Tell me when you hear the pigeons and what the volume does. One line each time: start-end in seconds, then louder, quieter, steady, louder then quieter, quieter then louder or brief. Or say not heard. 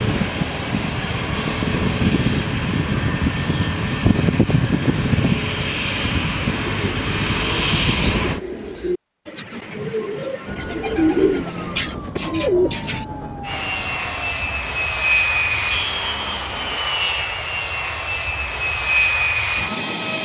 6.5-13.1 louder.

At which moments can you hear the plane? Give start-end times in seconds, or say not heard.
0.0-8.4, 13.4-20.2.